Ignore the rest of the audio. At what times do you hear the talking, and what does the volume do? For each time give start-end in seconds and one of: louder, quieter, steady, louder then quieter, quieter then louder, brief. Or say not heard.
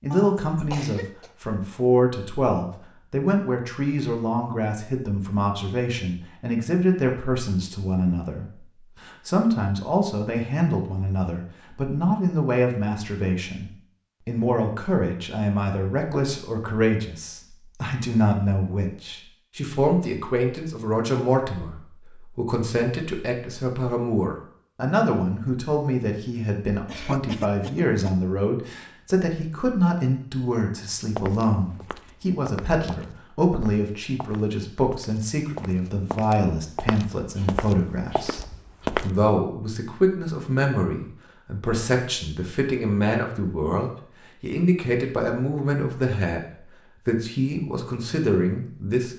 0.0-49.1 steady.